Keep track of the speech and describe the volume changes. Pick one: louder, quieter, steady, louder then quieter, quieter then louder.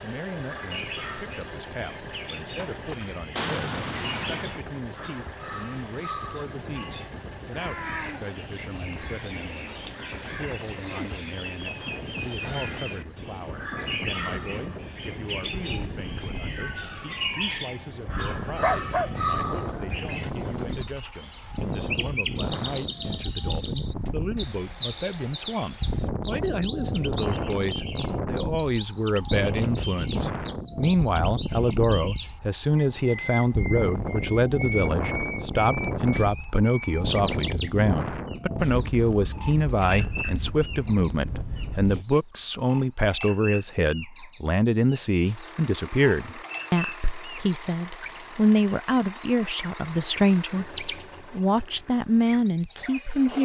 louder.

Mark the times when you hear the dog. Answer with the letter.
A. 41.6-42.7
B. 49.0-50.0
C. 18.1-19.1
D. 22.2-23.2
C.